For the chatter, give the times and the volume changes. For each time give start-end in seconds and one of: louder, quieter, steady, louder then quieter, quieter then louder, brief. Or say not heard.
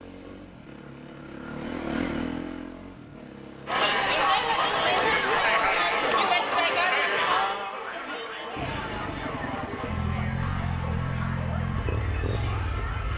3.6-13.1 quieter.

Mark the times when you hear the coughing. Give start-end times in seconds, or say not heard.
not heard.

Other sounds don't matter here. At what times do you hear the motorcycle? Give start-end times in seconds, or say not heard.
0.0-5.0, 8.6-13.1.